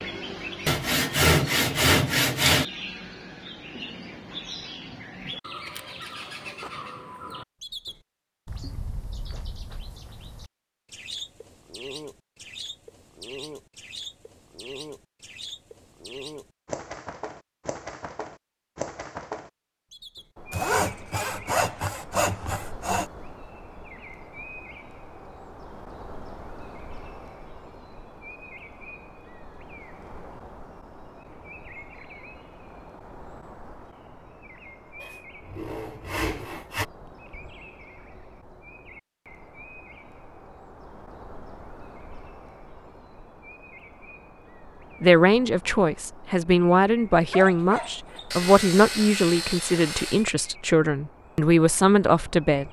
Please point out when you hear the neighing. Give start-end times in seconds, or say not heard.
not heard.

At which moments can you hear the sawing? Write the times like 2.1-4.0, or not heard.
0.7-2.6, 20.5-23.1, 35.0-36.9, 48.3-50.2.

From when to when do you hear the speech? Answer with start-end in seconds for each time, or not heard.
45.0-52.6.